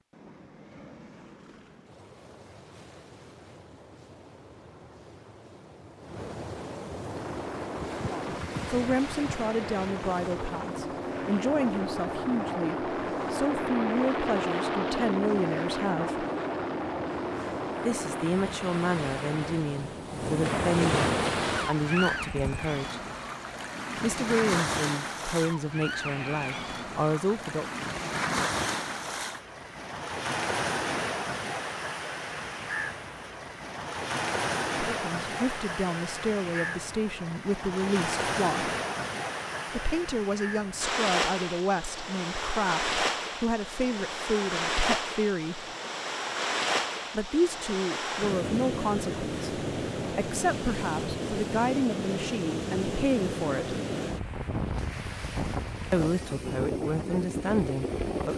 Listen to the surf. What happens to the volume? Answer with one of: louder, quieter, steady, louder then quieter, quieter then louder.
louder.